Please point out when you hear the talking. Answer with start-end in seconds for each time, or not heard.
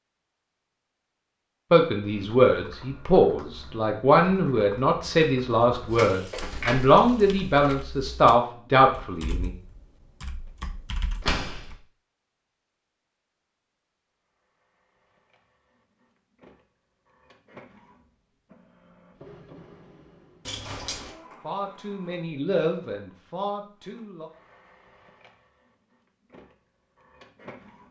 1.7-9.5, 21.4-24.3.